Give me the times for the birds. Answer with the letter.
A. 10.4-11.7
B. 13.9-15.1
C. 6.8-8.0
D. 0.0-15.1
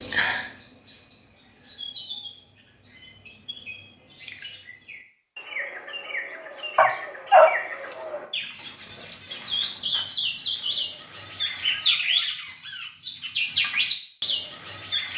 D.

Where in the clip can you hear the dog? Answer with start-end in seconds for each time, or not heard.
6.8-8.0.